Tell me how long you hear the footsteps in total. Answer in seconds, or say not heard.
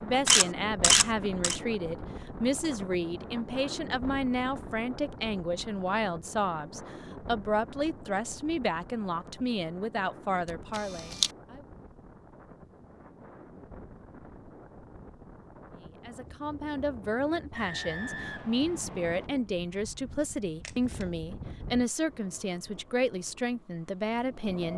not heard.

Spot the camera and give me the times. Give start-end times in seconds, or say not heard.
0.2-1.6, 10.8-11.3, 20.6-21.2.